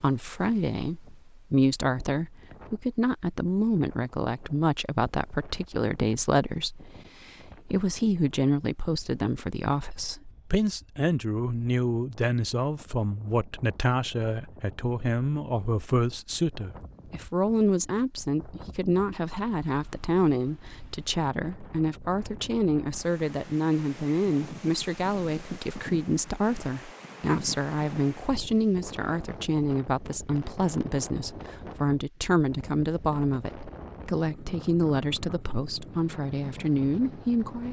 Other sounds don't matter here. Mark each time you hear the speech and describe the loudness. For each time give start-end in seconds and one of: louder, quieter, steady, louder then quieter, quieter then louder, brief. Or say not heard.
0.0-37.6 steady.